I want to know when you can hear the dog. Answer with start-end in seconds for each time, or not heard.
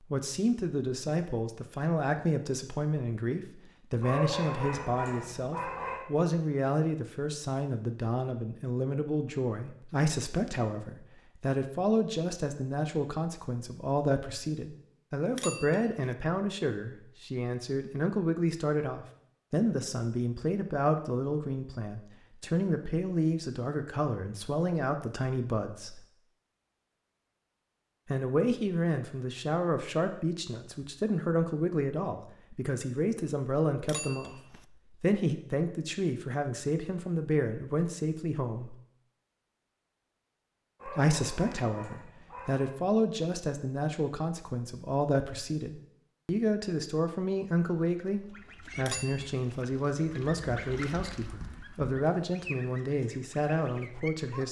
4.0-6.0, 40.8-42.8.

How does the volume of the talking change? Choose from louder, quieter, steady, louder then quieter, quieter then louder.
steady.